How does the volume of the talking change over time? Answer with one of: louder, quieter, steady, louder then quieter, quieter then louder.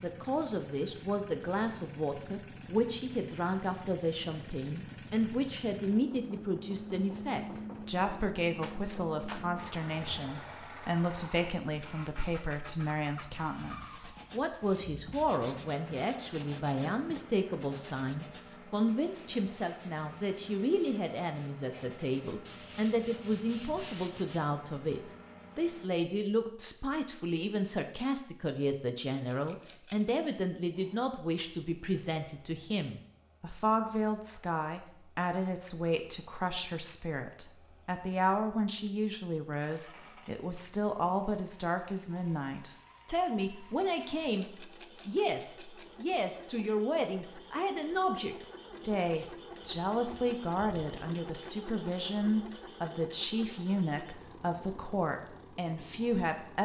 steady.